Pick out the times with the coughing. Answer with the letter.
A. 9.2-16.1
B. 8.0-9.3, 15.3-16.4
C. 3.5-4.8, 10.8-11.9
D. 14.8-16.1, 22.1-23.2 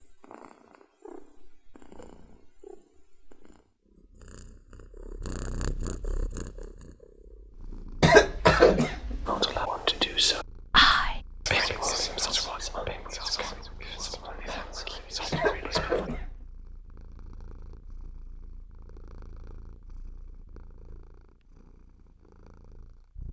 B.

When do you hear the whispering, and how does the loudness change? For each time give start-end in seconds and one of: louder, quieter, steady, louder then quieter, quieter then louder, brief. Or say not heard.
9.2-16.1 quieter.